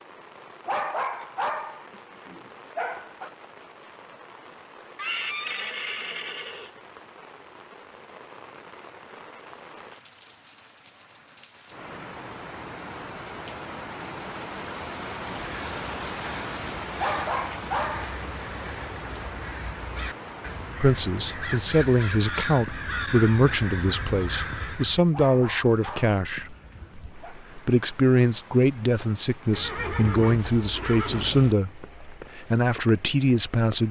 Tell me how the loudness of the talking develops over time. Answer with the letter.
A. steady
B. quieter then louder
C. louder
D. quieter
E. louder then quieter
A.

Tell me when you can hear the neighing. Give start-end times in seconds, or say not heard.
5.0-6.8, 29.5-31.6.